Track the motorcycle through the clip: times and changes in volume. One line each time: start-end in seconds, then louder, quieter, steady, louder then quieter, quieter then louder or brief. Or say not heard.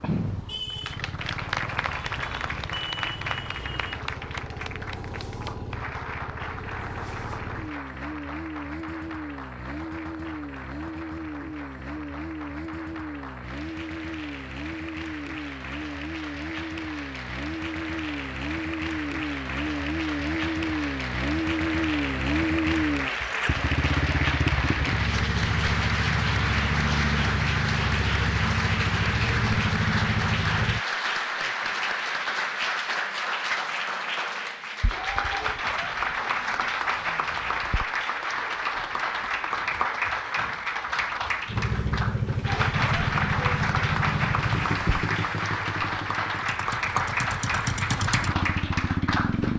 0.0-30.9 louder
41.5-49.5 quieter then louder.